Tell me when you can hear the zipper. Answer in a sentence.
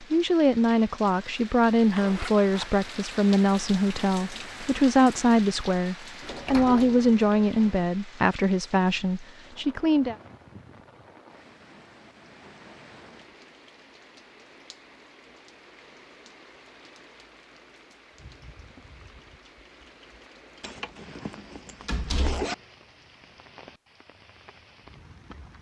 You can hear the zipper from 1.9 to 2.7 s and from 20.6 to 22.6 s.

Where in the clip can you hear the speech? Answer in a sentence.
The speech can be heard from 0.0 to 10.2 s.